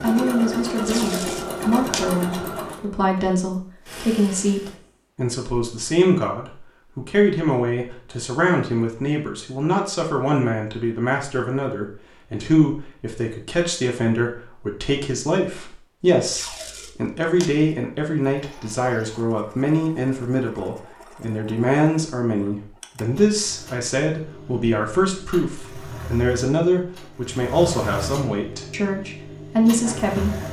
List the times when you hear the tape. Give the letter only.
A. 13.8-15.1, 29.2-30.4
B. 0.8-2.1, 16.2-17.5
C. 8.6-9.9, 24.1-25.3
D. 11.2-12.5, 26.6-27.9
B.